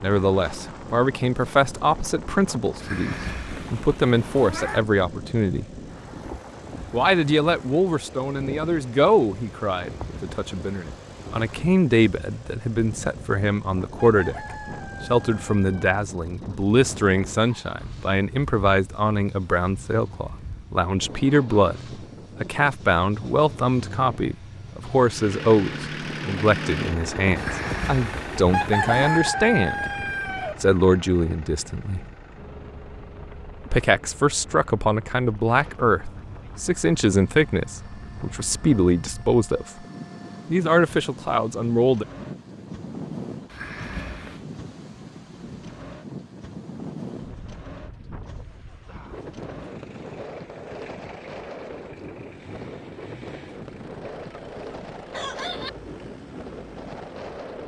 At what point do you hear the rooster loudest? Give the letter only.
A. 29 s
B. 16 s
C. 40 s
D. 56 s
A.